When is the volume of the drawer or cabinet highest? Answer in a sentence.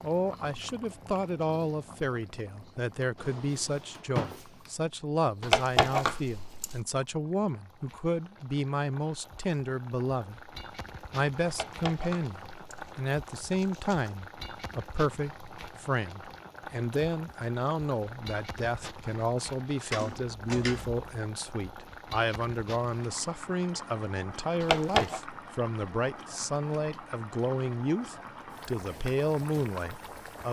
The volume of the drawer or cabinet peaks at 4 seconds.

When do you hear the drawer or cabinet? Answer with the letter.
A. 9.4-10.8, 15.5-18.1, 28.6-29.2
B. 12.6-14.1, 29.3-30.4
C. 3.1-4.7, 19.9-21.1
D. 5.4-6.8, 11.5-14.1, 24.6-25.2
C.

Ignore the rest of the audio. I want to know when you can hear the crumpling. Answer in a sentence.
You can hear the crumpling from 5.4 to 6.8 s, from 11.5 to 14.1 s and from 24.6 to 25.2 s.